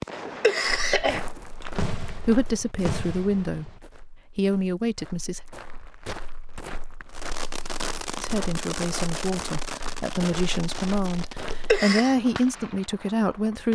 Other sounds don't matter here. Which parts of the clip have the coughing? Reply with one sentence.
The coughing can be heard from 0.1 to 1.7 s and from 11.5 to 12.2 s.